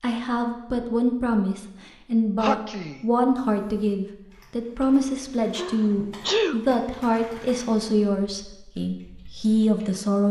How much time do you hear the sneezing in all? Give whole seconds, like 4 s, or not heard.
2 s.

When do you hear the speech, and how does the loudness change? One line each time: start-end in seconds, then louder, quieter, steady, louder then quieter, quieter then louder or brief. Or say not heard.
0.0-10.2 steady.